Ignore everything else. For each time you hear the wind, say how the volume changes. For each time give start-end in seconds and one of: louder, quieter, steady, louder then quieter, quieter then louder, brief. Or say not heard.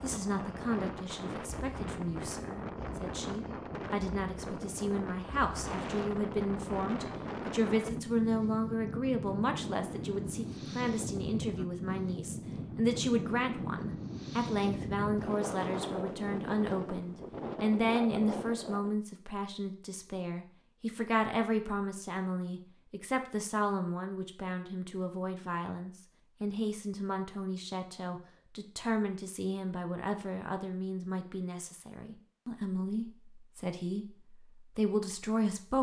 0.0-18.9 steady.